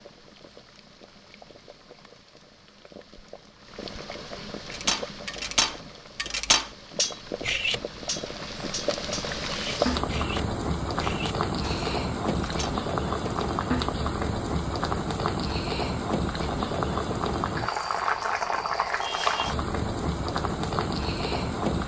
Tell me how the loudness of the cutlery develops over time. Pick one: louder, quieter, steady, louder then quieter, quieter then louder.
quieter.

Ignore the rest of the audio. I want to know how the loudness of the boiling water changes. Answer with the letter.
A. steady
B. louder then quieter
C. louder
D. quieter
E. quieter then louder
C.